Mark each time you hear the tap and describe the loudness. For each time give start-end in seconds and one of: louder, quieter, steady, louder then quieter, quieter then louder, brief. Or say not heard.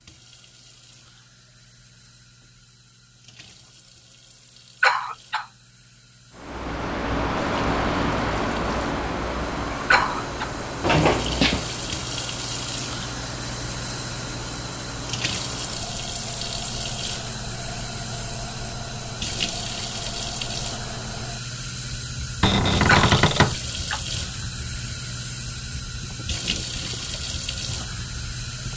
0.0-28.7 louder.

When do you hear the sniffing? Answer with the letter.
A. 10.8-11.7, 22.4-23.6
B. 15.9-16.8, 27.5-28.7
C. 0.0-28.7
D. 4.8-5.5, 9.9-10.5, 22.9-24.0
D.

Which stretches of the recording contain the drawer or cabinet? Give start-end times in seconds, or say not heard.
10.8-11.7, 22.4-23.6.